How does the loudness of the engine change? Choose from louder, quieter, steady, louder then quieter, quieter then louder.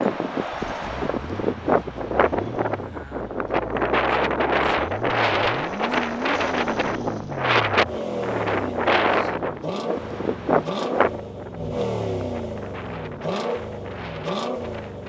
louder.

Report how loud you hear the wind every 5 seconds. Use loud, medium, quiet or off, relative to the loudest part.
loud, loud, medium.